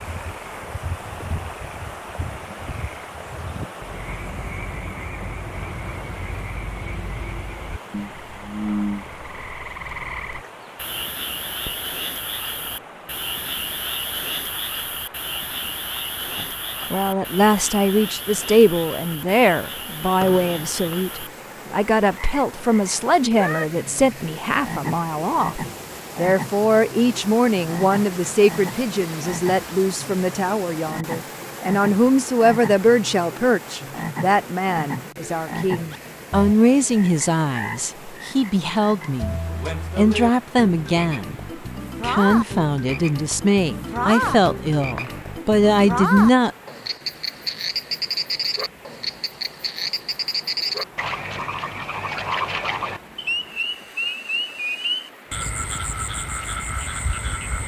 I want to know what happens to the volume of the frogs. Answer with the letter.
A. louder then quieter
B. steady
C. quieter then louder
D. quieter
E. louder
E.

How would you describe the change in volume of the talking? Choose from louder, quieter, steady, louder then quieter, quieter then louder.
steady.